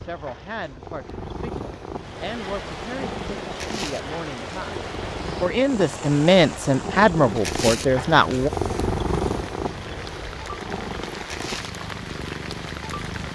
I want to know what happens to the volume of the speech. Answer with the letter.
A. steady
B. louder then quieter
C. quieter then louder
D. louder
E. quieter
D.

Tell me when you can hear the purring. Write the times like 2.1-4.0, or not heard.
0.0-13.2.